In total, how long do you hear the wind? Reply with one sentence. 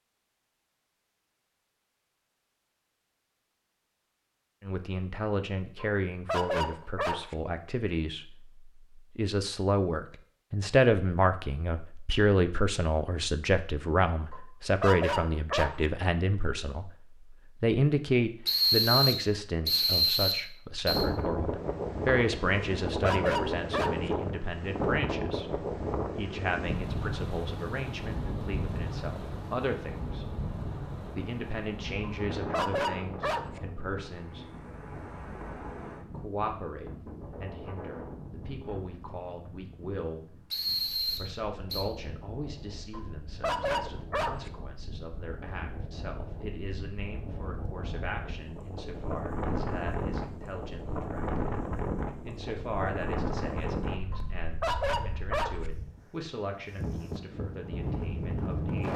The wind can be heard for 38 seconds in total.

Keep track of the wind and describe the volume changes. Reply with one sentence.
The volume of the wind goes down, then up.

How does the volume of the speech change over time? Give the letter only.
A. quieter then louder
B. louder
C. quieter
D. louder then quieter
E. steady
C.